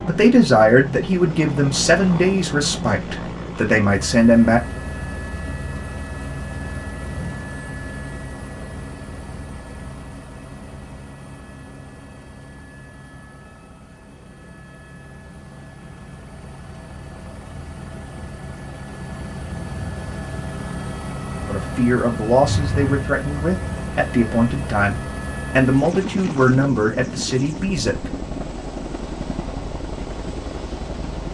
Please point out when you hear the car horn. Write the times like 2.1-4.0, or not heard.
22.4-23.1.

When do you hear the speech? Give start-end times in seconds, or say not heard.
0.1-4.6, 21.4-28.1.